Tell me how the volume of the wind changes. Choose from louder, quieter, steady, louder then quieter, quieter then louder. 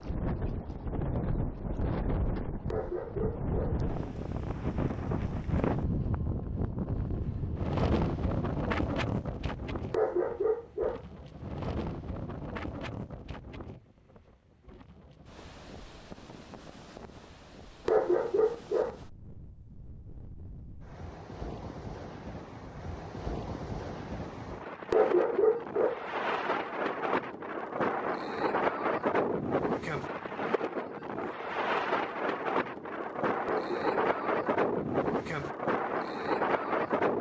quieter then louder.